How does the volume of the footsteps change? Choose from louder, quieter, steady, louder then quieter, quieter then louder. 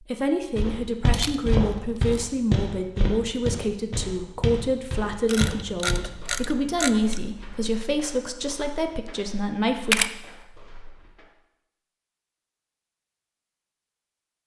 quieter.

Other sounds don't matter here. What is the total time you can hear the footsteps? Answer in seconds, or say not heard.
11 s.